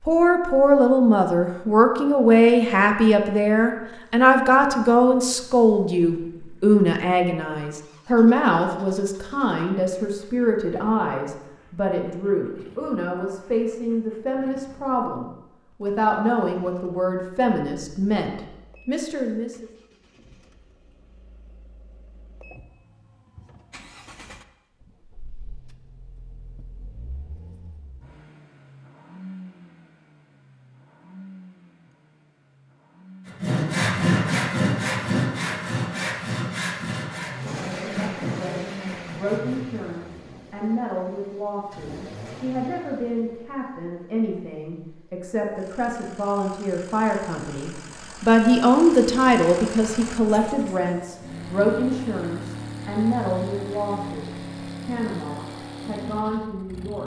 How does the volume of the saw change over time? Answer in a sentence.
The volume of the saw goes down.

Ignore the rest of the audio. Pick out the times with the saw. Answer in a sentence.
You can hear the saw from 33.3 to 39.8 s.